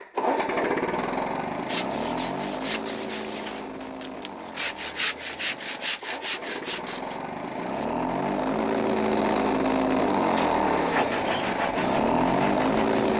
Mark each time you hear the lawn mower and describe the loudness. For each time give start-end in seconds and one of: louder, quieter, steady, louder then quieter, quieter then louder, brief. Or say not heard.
0.0-13.1 quieter then louder.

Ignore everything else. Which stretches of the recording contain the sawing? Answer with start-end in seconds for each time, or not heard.
1.6-7.8, 10.3-13.1.